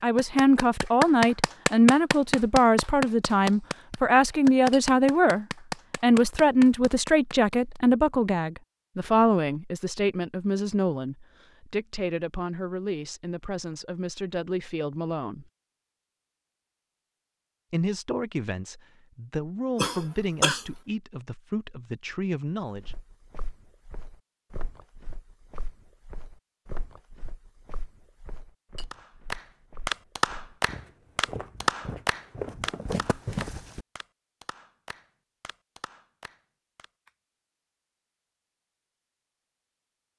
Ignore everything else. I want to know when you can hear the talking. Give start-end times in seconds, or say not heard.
0.0-15.4, 17.7-22.9.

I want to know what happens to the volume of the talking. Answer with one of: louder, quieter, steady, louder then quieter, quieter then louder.
quieter.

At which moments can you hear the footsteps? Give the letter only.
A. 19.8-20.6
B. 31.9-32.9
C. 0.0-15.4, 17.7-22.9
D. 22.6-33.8
D.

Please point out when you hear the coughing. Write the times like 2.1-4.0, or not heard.
19.8-20.6.